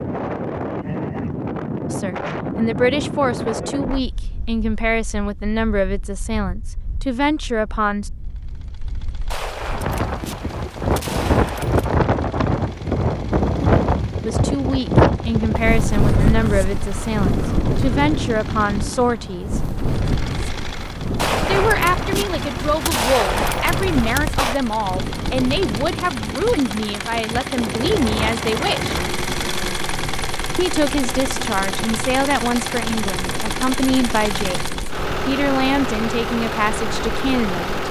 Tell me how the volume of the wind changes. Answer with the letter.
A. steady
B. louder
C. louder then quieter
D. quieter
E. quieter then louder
C.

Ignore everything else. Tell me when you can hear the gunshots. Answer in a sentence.
You can hear the gunshots from 9.3 to 11.9 s and from 21.1 to 24.6 s.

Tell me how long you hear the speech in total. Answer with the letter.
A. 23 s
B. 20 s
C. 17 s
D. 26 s
D.